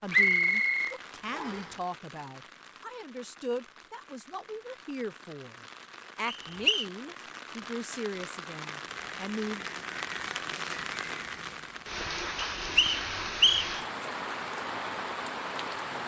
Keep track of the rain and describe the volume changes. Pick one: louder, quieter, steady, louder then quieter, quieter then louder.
louder.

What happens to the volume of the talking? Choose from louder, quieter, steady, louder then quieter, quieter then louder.
steady.